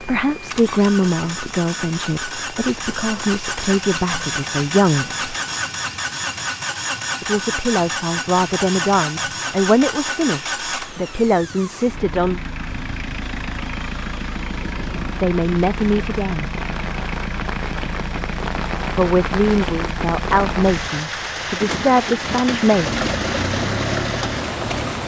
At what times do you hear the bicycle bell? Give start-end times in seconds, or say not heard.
not heard.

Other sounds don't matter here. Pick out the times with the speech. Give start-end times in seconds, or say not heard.
0.0-5.2, 7.2-12.4, 15.2-16.5, 18.9-22.9.